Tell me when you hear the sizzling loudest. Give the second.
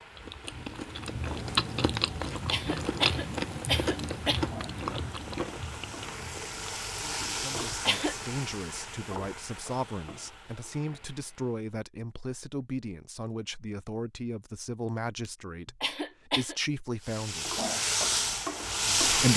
19 s.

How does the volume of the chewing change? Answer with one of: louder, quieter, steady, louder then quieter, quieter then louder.
quieter.